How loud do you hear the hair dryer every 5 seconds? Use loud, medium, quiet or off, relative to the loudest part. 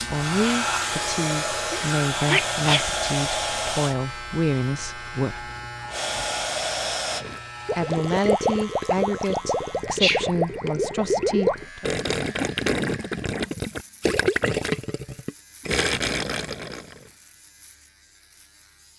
loud, loud, off, off.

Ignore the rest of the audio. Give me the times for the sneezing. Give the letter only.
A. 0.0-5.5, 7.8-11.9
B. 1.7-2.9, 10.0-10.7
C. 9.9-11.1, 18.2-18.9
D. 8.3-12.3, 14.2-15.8
B.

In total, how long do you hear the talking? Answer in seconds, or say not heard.
10 s.